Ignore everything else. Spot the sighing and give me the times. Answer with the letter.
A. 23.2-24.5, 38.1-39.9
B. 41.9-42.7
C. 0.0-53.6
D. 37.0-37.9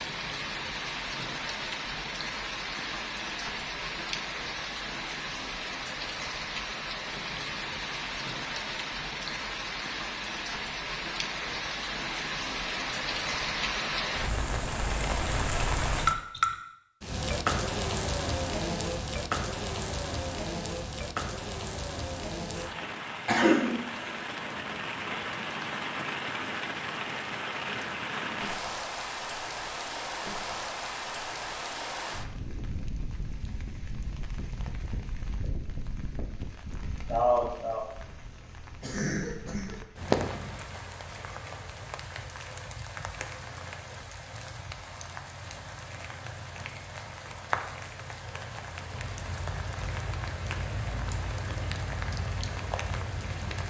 D.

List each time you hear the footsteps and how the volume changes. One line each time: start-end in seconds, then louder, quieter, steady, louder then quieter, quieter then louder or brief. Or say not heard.
not heard.